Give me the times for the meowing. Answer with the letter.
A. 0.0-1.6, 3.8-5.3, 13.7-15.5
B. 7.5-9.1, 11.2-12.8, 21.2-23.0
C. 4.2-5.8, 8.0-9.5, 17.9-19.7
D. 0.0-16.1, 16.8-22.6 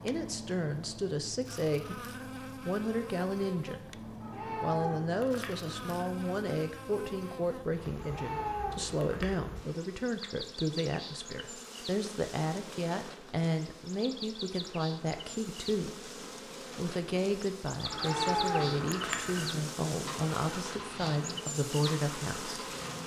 C.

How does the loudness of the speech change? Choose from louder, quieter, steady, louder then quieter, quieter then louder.
steady.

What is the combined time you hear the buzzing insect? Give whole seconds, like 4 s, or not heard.
23 s.